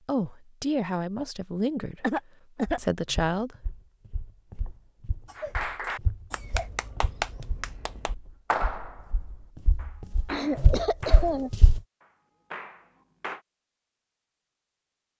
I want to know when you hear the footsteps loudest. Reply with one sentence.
The volume of the footsteps peaks at 11 seconds.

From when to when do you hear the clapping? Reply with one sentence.
The clapping can be heard from 5.3 to 13.4 s.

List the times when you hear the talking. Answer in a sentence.
You can hear the talking from 0.1 to 3.5 s.